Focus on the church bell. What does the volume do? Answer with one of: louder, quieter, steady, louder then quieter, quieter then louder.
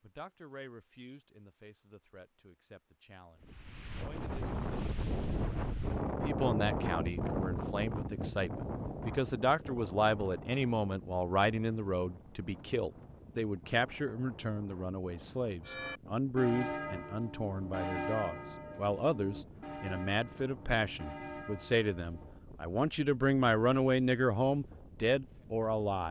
quieter.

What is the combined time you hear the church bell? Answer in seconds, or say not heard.
7 s.